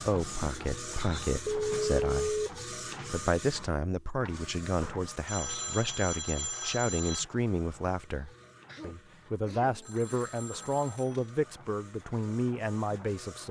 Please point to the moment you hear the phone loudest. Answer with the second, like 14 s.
2 s.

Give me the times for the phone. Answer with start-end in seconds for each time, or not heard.
0.9-2.5, 5.2-7.2, 9.7-11.3.